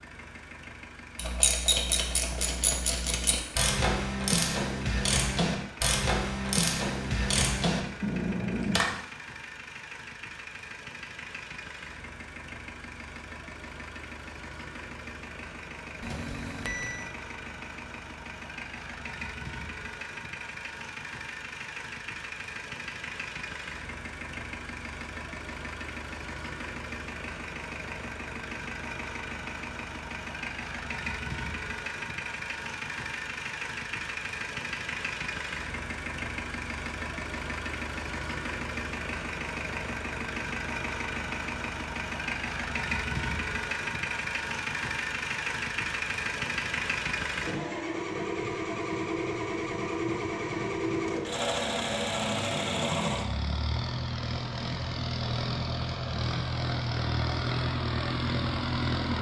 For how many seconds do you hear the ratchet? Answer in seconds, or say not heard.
8 s.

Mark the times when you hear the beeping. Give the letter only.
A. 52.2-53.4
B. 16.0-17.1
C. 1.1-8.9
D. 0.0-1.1
B.